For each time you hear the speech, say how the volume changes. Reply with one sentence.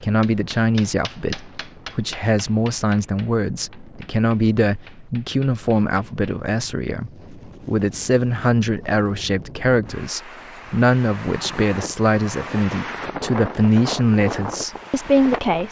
The speech can be heard from 0.0 to 15.6 s, at a steady volume.